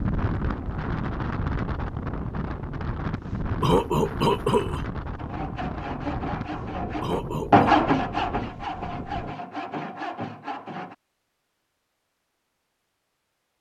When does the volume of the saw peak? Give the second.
8 s.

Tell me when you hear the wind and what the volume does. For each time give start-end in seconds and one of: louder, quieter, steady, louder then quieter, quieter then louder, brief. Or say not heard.
0.0-9.3 quieter.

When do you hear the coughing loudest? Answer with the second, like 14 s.
4 s.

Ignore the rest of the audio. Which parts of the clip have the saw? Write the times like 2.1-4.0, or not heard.
5.2-10.9.